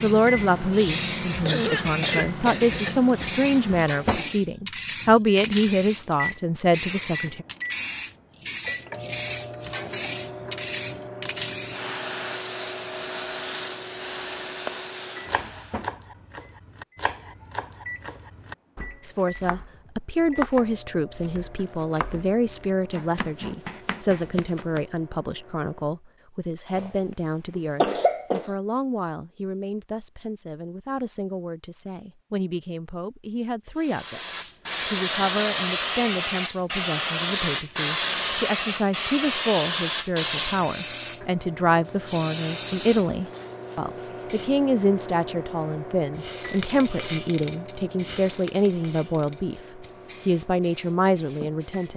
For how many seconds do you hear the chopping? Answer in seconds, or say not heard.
10 s.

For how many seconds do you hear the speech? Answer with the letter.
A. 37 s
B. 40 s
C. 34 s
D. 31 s
B.